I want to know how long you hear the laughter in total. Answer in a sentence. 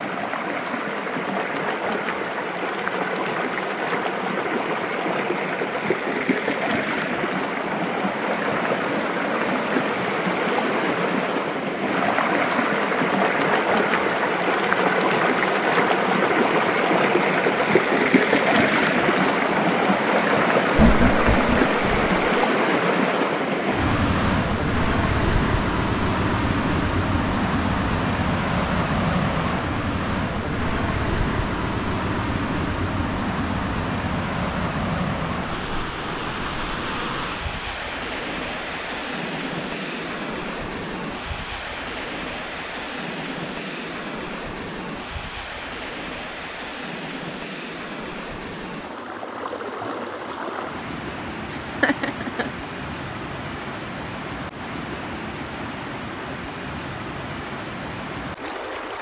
The laughter can be heard for 2 seconds in total.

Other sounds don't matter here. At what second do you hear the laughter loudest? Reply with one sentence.
The loudest moment of the laughter is at 21 seconds.